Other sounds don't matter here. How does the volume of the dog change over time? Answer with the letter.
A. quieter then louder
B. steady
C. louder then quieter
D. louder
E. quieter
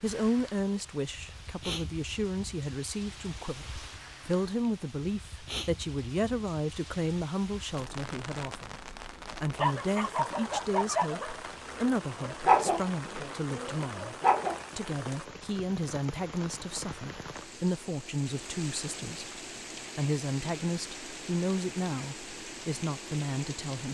C.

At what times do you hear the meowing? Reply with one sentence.
You can't hear the meowing here.